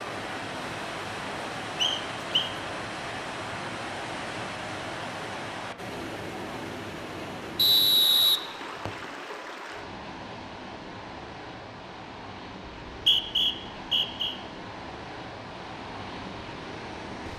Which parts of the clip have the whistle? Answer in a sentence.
You can hear the whistle from 1.8 to 2.5 s, from 7.5 to 9.1 s and from 12.8 to 14.3 s.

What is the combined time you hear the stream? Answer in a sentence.
You can hear the stream for 17 seconds altogether.